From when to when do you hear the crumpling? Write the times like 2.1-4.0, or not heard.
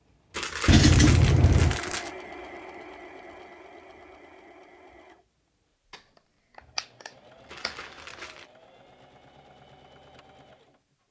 0.3-2.1, 7.5-8.5.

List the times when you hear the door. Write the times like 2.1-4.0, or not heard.
not heard.